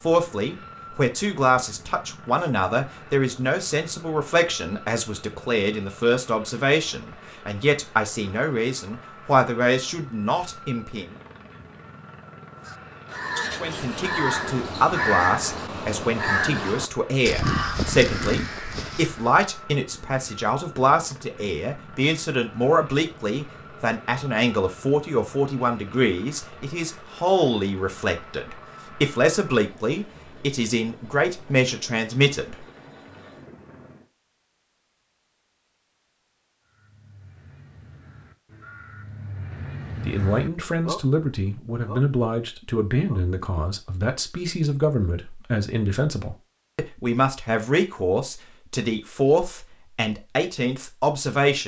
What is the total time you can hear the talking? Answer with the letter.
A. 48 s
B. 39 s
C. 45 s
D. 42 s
D.